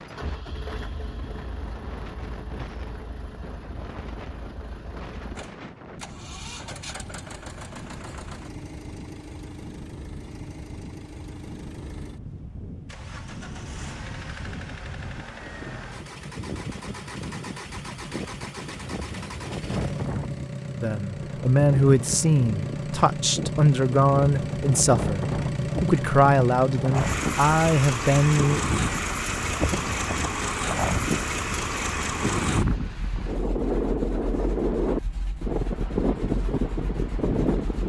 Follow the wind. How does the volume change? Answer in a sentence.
The volume of the wind goes up.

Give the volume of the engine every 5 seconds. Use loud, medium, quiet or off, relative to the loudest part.
quiet, quiet, quiet, medium, loud, loud, loud, quiet.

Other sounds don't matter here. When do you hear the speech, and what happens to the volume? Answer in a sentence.
The speech can be heard from 20.8 to 28.6 s, at a steady volume.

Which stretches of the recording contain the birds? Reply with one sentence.
The birds can't be heard in this clip.